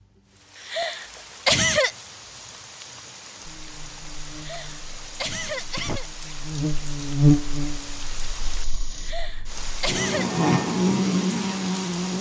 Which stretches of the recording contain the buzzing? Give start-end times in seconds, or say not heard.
3.5-12.1.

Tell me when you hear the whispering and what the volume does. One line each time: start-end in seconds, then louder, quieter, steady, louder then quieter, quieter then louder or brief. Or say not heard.
not heard.